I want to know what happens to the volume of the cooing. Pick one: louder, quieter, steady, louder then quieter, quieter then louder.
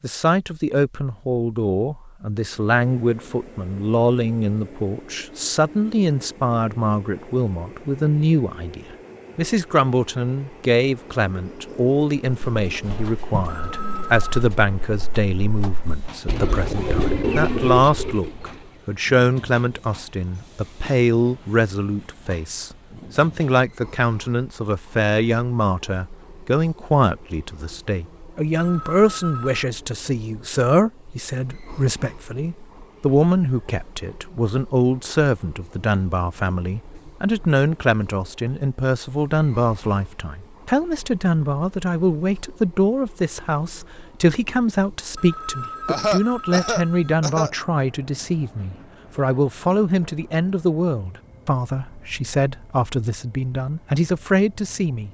quieter then louder.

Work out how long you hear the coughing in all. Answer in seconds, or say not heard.
2 s.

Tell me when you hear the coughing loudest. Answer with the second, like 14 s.
46 s.